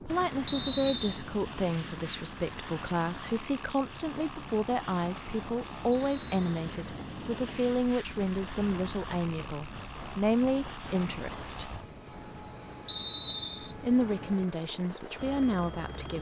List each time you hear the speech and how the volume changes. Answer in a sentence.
You can hear the speech from 0.0 to 11.7 s, at a steady volume; and briefly from 13.8 to 16.1 s.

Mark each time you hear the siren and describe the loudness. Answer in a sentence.
The siren can't be heard in this clip.